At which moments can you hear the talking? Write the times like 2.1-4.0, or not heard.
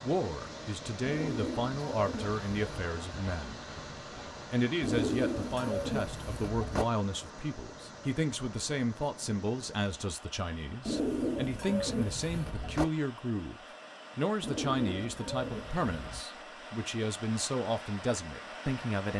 0.0-3.6, 4.5-13.6, 14.2-19.1.